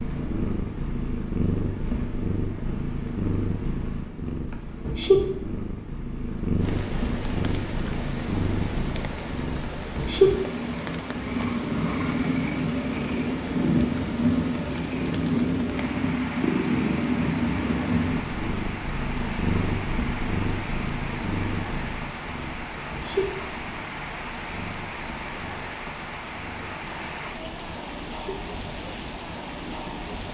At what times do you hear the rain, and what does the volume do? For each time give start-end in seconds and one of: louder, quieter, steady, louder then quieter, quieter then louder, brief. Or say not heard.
6.5-30.2 steady.